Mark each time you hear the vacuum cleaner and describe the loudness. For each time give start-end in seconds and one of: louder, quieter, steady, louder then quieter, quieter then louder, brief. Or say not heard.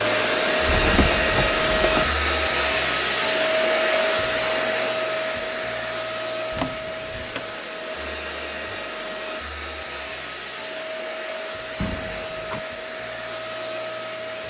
0.0-14.4 quieter.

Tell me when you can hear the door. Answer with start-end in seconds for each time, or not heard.
0.7-2.1, 6.5-7.5, 11.8-12.7.